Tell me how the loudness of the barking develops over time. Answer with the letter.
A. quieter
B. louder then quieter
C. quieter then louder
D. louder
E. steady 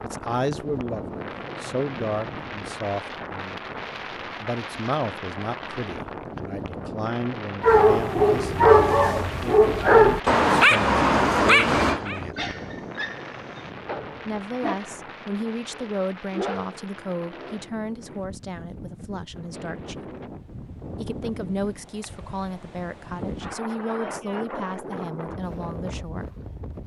A.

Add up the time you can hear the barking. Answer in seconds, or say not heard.
10 s.